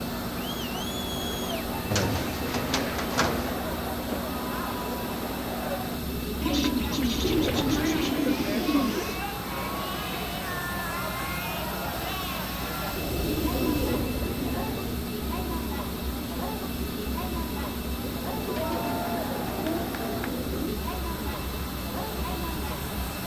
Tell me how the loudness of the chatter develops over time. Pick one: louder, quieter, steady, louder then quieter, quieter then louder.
steady.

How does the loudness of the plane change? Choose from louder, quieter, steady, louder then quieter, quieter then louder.
steady.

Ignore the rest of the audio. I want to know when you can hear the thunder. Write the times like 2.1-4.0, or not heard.
not heard.